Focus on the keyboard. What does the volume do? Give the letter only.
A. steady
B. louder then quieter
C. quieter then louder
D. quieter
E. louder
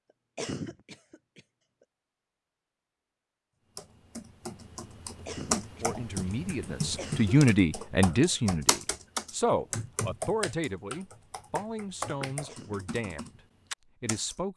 D.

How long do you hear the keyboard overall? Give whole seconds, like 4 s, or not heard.
11 s.